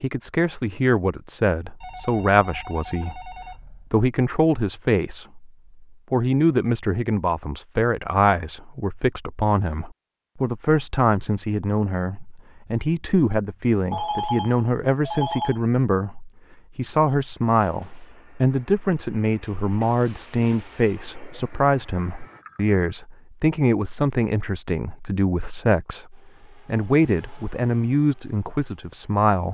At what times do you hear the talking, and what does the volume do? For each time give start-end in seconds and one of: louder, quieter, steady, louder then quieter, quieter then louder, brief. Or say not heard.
0.0-29.5 steady.